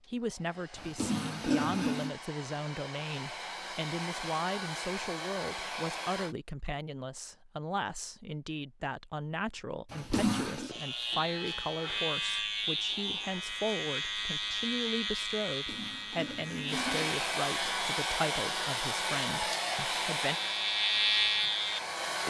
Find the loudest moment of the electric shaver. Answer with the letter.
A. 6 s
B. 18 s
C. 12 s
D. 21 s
D.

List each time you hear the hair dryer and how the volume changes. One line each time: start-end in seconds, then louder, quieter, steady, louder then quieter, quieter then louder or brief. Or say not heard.
0.0-6.3 louder
16.6-22.2 quieter.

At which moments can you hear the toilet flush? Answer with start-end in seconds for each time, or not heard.
0.8-2.1, 9.9-10.7, 15.4-17.1.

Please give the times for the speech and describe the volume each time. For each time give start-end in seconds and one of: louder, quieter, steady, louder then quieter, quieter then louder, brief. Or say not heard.
0.1-20.4 steady.